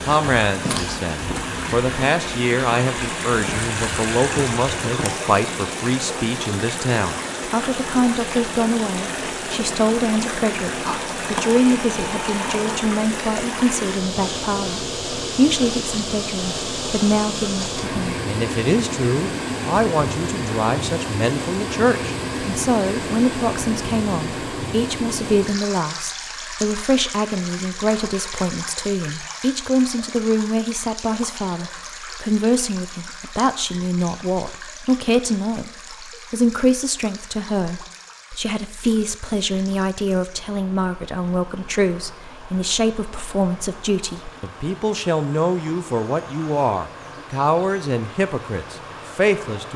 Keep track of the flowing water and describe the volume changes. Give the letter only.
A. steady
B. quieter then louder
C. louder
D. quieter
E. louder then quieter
D.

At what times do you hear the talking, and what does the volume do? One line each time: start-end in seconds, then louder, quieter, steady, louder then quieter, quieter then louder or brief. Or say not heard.
0.0-49.7 steady.